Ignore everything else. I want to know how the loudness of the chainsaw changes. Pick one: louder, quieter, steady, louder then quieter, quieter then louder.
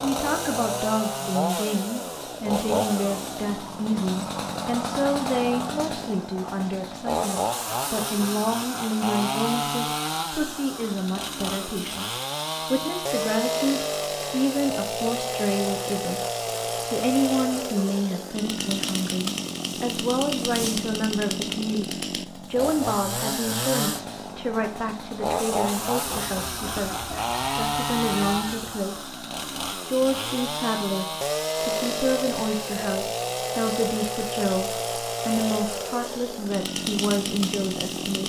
steady.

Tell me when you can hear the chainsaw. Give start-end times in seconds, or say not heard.
0.0-38.2.